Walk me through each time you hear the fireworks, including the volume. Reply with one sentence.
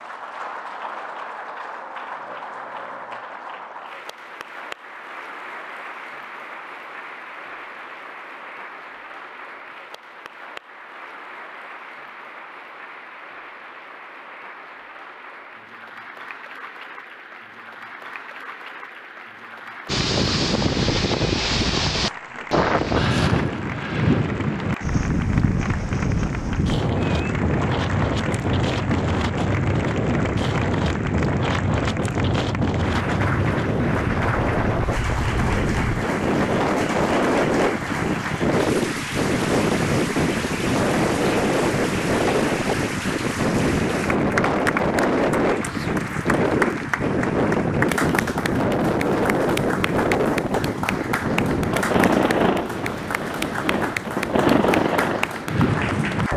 The fireworks can't be heard in this clip.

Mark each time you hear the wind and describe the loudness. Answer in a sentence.
You can hear the wind from 19.9 to 56.3 s, at a steady volume.